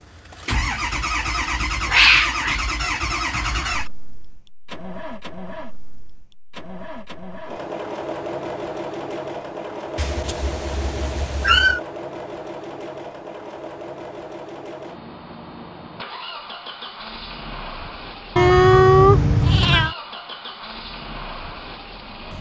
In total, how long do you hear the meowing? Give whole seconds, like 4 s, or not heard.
5 s.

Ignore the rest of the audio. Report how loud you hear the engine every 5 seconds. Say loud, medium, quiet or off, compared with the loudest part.
loud, medium, medium, medium, medium.